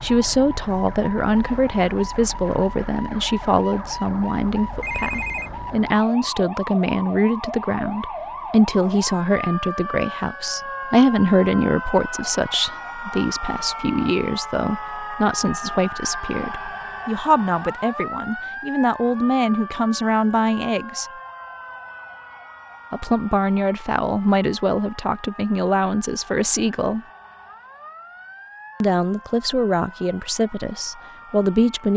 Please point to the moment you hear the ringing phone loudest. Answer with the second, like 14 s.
5 s.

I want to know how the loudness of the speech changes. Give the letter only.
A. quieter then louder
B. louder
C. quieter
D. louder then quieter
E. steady
E.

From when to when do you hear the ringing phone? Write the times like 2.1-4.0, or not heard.
4.8-5.5, 16.0-17.1.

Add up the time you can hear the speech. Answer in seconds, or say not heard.
28 s.